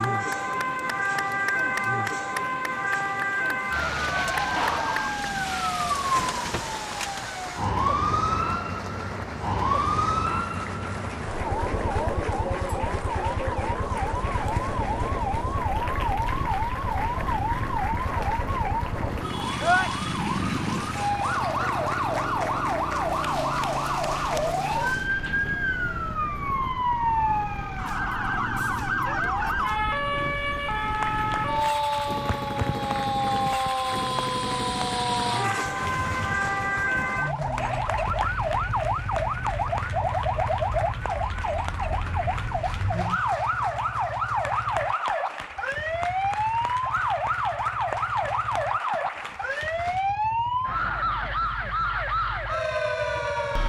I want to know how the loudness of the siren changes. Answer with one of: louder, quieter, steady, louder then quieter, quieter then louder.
steady.